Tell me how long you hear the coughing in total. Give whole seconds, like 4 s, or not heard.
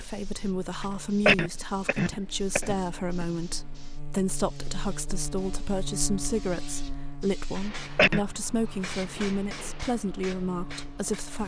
3 s.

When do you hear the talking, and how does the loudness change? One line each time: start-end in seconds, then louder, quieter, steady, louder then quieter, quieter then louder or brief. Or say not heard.
0.0-11.4 steady.